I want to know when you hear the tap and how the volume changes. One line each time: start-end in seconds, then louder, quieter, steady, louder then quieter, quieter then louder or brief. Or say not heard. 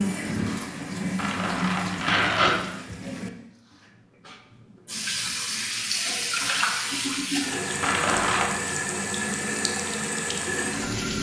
0.0-11.1 quieter then louder.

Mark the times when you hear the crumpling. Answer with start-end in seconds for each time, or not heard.
1.1-2.5, 7.8-8.5.